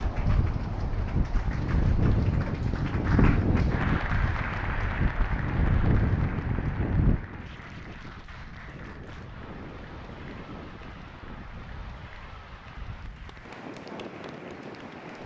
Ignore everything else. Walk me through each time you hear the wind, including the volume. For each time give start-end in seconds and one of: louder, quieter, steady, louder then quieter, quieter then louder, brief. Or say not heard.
0.0-15.2 quieter.